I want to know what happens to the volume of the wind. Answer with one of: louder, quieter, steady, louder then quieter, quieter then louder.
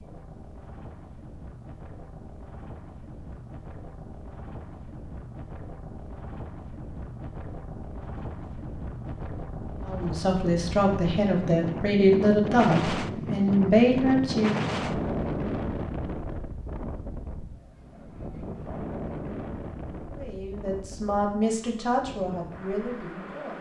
louder then quieter.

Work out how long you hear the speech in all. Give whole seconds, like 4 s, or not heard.
8 s.